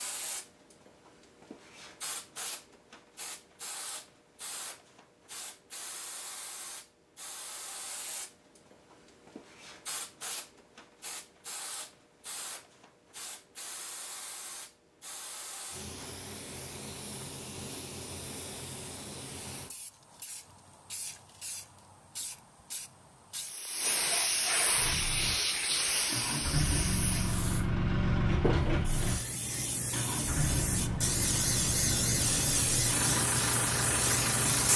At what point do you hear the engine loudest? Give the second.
28 s.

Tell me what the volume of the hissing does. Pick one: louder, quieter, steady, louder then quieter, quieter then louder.
louder.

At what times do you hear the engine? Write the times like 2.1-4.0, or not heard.
24.7-34.7.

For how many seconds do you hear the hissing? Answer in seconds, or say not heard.
35 s.